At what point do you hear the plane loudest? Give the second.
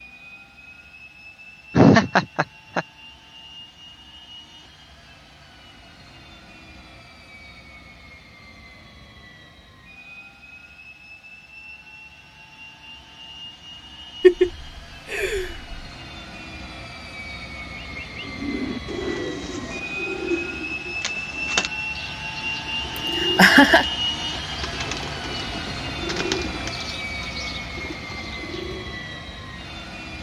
24 s.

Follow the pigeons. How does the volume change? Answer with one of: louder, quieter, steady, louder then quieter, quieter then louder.
quieter.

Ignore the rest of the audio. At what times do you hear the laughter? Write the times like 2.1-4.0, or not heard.
1.8-2.9, 14.2-15.8, 22.9-23.9.